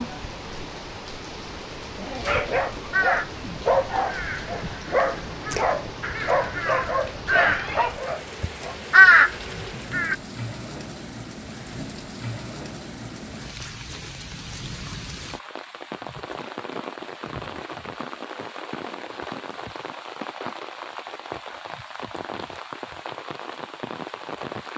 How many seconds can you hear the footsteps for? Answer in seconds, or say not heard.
not heard.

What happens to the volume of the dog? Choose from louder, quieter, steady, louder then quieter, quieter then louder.
steady.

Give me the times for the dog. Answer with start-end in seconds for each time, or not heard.
1.9-8.8.